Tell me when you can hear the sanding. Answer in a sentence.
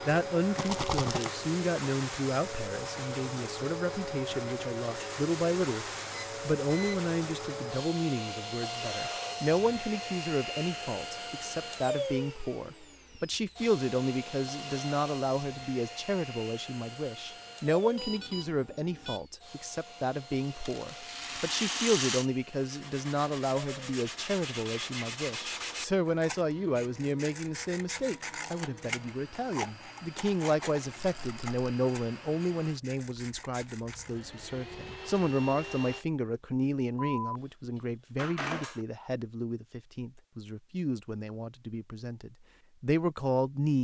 The sanding can be heard from 22.6 to 34.3 s.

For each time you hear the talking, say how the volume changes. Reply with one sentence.
You can hear the talking from 0.0 to 43.7 s, at a steady volume.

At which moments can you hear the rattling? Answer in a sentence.
You can hear the rattling from 0.6 to 1.3 s, from 20.6 to 22.3 s and from 31.2 to 31.6 s.